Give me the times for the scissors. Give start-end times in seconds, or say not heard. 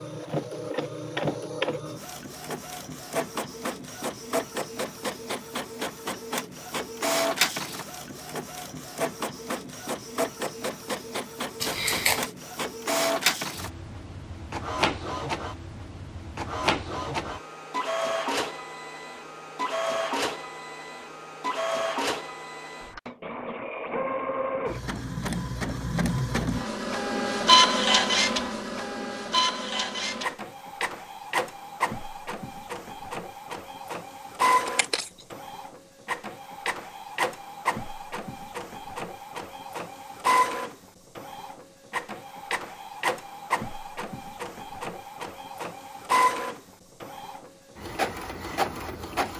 11.6-12.3, 34.6-35.2.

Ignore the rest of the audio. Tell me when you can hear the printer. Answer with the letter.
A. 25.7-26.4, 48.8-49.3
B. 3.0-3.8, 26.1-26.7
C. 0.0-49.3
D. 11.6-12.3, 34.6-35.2
C.